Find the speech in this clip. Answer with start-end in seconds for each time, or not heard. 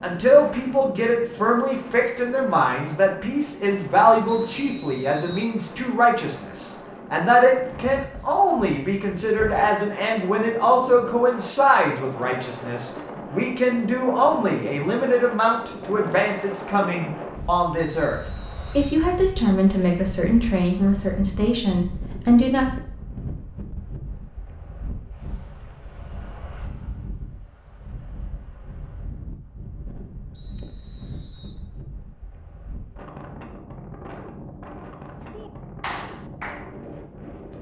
0.0-22.6.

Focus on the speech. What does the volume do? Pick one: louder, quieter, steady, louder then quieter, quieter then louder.
steady.